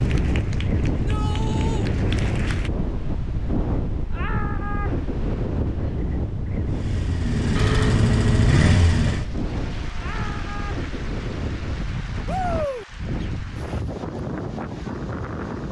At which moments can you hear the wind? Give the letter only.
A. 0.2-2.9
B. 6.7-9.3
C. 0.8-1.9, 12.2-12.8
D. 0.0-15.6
D.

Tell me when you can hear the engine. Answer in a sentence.
You can hear the engine from 6.7 to 9.3 s.